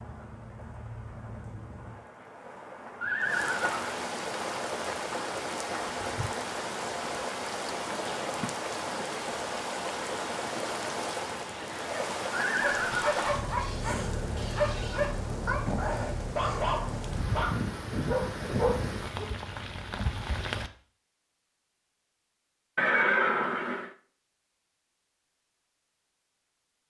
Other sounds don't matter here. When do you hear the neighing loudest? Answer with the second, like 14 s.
23 s.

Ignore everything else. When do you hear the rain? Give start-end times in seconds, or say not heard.
0.0-20.7.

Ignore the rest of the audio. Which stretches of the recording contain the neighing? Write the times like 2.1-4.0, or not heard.
3.0-4.0, 12.3-13.2, 22.8-23.9.